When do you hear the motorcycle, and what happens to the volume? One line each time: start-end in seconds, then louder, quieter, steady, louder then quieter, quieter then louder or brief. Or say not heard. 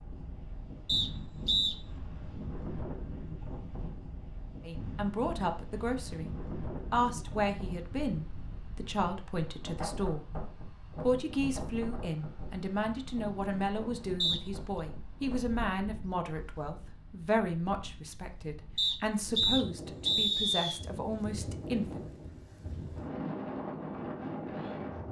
not heard.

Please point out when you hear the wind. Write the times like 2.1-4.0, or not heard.
0.0-25.0.